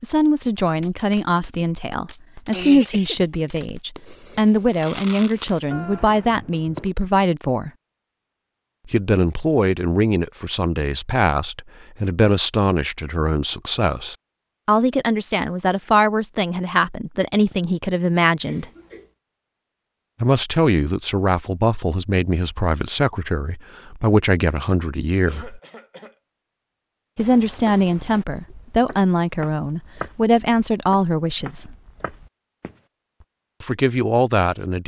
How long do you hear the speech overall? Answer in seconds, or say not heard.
29 s.